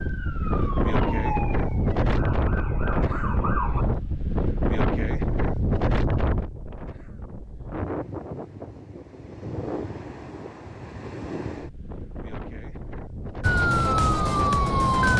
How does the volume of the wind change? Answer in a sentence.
The volume of the wind goes down.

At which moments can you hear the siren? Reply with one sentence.
The siren can be heard from 0.0 to 3.9 s and from 13.4 to 15.1 s.